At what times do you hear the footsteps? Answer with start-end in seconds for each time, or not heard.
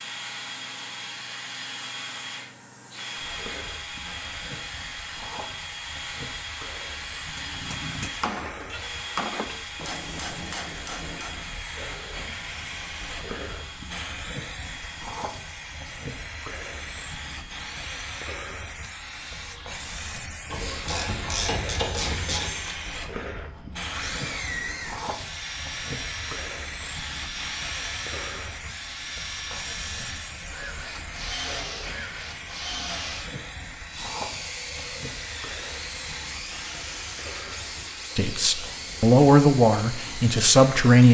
not heard.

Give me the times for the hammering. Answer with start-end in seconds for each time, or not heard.
7.3-11.6.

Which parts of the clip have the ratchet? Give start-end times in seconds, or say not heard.
20.5-22.5.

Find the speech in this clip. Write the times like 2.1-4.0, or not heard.
38.1-41.0.